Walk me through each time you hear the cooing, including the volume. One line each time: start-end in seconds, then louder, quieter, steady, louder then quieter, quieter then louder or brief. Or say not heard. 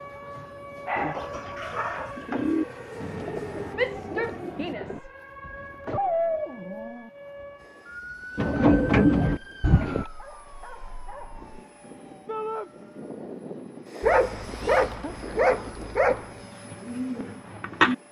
0.9-6.0 louder then quieter
8.3-10.1 brief
16.4-17.9 brief.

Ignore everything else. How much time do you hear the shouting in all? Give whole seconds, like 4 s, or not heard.
2 s.